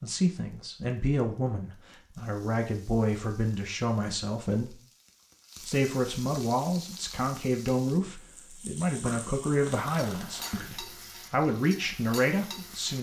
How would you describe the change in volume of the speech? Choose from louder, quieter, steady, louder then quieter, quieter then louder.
steady.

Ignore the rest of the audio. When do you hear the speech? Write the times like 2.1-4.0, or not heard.
0.0-4.8, 5.7-12.9.